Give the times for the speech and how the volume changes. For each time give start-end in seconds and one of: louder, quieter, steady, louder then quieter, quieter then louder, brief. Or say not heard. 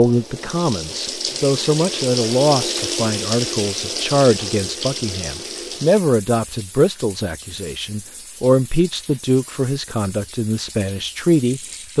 0.0-11.9 steady.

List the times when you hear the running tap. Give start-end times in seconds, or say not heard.
0.0-11.9.